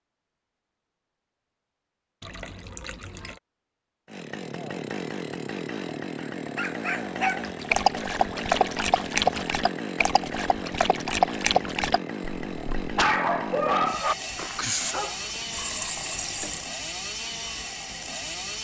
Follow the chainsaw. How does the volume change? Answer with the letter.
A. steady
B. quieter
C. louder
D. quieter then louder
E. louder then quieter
A.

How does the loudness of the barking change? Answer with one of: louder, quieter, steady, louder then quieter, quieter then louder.
steady.